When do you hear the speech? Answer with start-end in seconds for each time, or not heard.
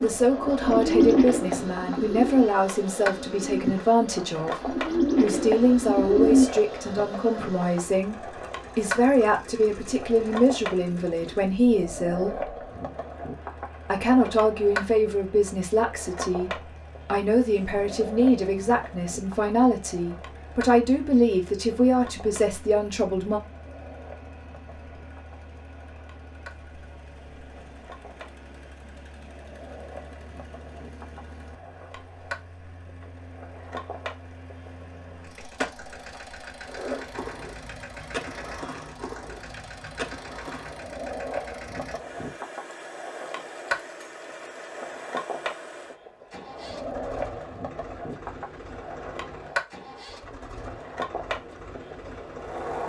0.0-12.3, 13.8-23.4.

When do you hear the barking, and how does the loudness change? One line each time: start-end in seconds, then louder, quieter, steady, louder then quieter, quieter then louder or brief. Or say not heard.
not heard.